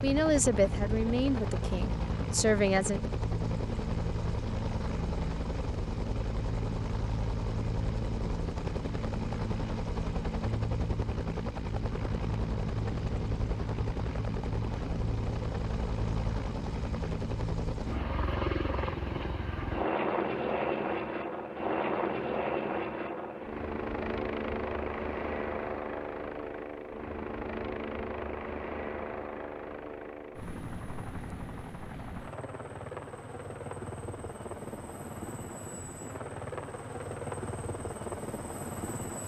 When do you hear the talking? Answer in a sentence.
You can hear the talking from 0.0 to 3.0 s.